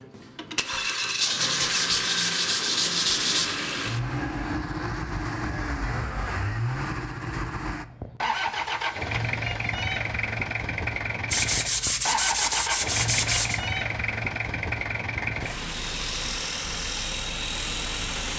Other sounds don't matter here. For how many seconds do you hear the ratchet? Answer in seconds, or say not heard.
not heard.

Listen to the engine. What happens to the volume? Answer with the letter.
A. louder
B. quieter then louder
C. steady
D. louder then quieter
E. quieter
C.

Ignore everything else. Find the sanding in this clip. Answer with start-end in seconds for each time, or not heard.
1.1-3.5, 11.3-13.6.